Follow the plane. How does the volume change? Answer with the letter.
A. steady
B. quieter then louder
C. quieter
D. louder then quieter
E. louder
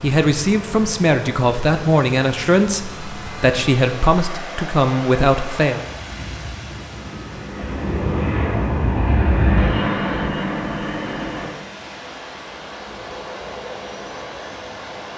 D.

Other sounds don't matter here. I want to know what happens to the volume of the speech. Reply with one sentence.
The volume of the speech stays about the same.